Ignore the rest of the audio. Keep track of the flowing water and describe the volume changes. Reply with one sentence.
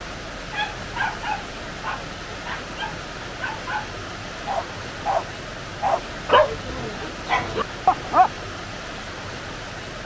The loudness of the flowing water stays about the same.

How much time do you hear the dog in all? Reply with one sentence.
You can hear the dog for 8 seconds altogether.